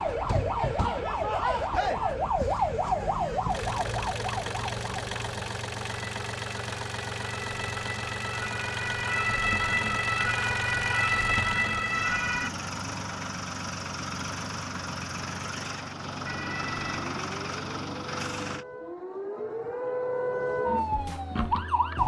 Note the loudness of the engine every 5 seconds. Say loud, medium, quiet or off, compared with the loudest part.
loud, loud, loud, loud, off.